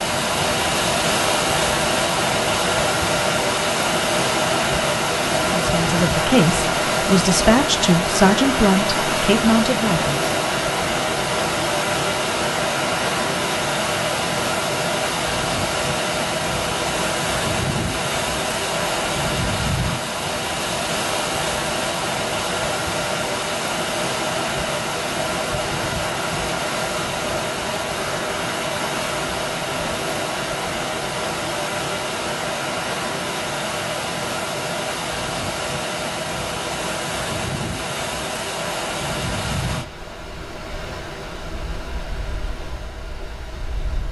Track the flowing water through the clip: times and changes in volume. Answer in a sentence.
The flowing water can be heard from 0.0 to 44.0 s, getting quieter.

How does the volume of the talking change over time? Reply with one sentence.
The loudness of the talking stays about the same.